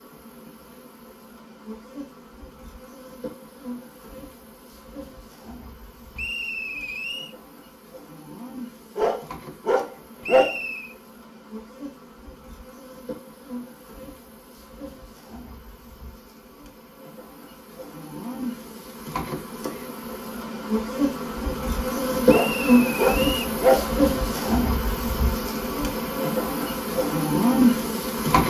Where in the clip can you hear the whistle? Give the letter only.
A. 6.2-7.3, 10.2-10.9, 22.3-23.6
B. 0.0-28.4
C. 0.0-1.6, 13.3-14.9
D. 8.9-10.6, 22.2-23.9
A.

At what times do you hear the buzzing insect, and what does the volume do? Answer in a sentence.
The buzzing insect can be heard from 0.0 to 28.4 s, getting louder.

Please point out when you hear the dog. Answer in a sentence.
You can hear the dog from 8.9 to 10.6 s and from 22.2 to 23.9 s.